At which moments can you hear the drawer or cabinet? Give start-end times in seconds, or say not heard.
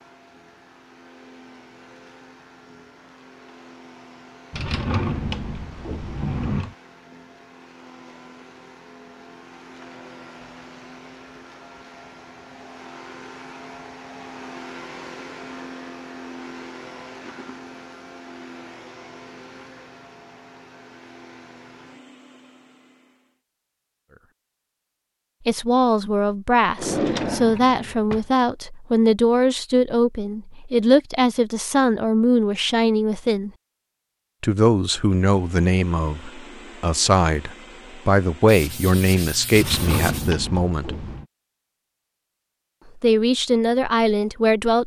4.5-6.8, 26.8-28.2, 39.5-41.2.